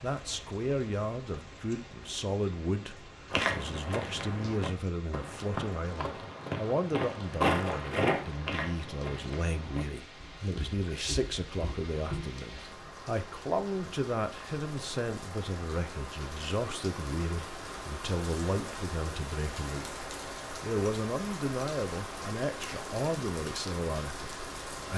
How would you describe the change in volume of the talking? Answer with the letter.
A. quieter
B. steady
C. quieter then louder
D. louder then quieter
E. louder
B.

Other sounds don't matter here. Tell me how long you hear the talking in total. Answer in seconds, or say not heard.
24 s.